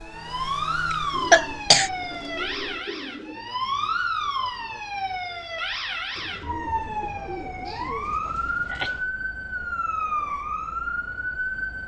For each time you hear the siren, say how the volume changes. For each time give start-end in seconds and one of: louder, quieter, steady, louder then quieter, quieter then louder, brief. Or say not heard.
0.0-11.8 steady.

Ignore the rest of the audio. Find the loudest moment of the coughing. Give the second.
1 s.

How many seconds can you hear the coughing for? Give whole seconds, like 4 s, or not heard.
2 s.